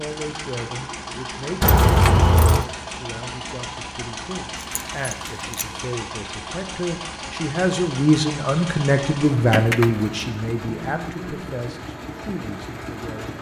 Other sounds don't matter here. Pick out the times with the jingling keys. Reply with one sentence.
The jingling keys can be heard from 1.6 to 2.6 s, from 4.5 to 5.7 s and from 9.5 to 10.1 s.